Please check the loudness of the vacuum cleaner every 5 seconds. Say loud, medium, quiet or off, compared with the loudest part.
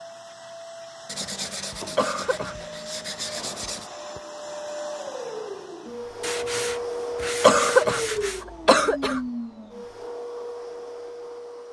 medium, loud, medium.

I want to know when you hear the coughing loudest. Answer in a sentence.
The volume of the coughing peaks at 8 seconds.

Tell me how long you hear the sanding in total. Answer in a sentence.
You can hear the sanding for 5 seconds altogether.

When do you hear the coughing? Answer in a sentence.
You can hear the coughing from 1.9 to 2.5 s and from 7.4 to 9.2 s.